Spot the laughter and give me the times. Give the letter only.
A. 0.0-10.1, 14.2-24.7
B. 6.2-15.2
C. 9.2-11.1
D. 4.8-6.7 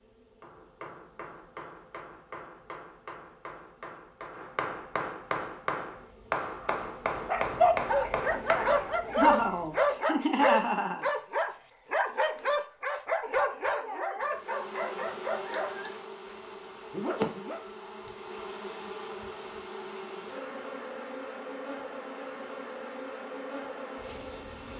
C.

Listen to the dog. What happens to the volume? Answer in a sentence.
The loudness of the dog goes down.